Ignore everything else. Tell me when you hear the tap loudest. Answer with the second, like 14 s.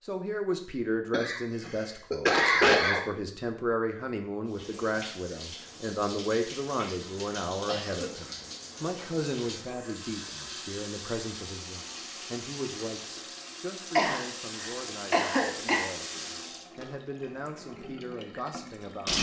19 s.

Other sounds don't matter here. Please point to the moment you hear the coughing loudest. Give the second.
3 s.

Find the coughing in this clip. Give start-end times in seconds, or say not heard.
1.1-3.0, 7.7-8.2, 13.9-15.9.